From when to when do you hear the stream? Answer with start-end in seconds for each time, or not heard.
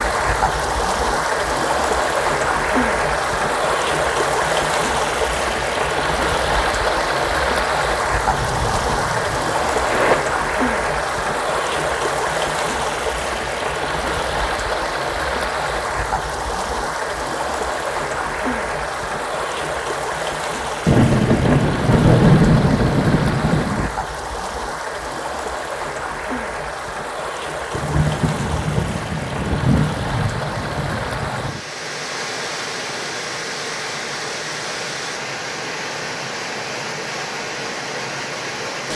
0.0-38.9.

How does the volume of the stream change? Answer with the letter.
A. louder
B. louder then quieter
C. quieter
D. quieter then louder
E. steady
C.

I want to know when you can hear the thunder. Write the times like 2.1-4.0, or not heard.
8.2-10.2, 20.9-23.9, 27.7-31.6.